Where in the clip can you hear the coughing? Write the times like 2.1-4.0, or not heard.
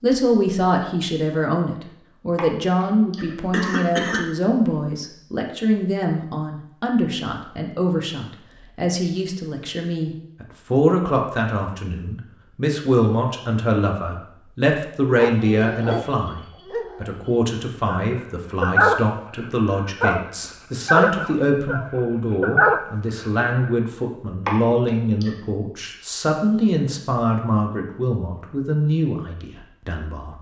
2.4-4.2, 24.4-25.3.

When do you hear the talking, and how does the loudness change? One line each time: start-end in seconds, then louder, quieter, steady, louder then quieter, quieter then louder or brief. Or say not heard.
0.0-30.3 steady.